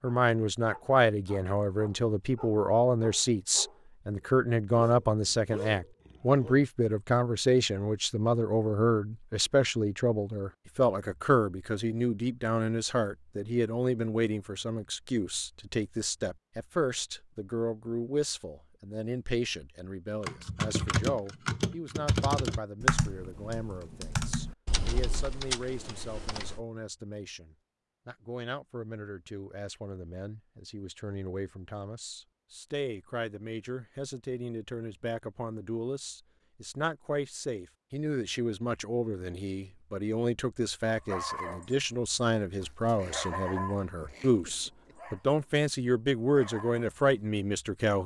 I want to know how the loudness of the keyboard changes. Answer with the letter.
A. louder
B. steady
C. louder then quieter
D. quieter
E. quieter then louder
D.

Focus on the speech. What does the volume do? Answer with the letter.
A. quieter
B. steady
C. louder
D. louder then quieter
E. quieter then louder
E.